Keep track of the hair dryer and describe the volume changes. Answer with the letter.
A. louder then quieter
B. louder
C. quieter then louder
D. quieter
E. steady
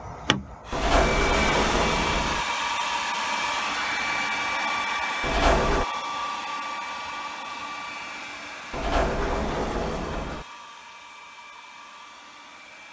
D.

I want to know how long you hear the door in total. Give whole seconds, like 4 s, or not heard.
4 s.